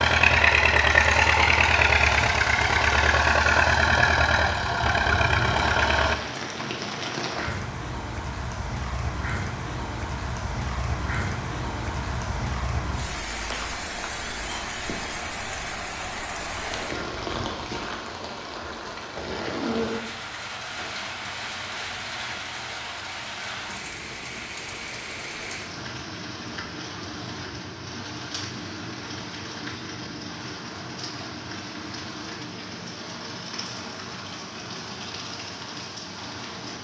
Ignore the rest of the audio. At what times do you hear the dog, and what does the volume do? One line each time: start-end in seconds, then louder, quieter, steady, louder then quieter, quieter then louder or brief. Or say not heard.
not heard.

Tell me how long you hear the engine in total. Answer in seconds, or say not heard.
6 s.